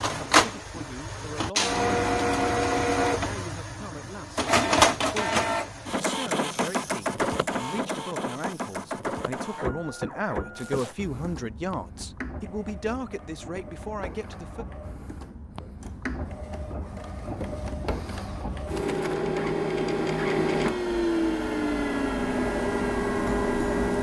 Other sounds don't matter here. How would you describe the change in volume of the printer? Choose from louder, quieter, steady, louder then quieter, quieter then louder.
quieter then louder.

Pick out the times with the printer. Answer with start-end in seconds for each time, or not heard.
0.0-23.9.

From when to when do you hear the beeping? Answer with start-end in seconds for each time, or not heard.
not heard.